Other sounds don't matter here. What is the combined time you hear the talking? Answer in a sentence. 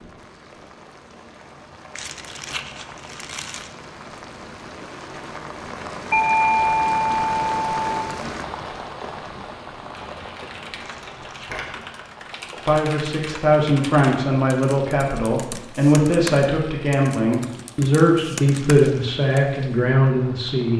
You can hear the talking for 8 seconds altogether.